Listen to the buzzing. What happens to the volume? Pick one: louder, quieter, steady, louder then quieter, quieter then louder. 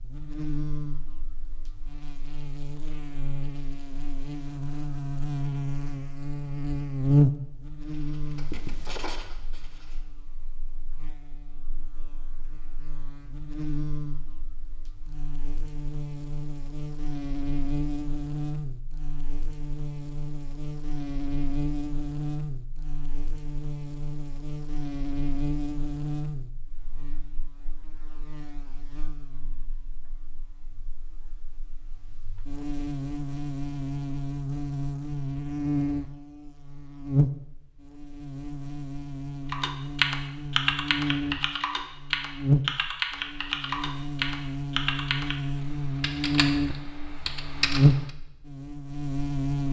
quieter then louder.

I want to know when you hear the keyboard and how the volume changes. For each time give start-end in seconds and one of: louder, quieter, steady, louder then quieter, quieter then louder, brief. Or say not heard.
39.5-48.1 quieter.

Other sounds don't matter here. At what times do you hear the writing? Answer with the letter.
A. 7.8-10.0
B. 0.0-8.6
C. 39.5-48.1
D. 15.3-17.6
A.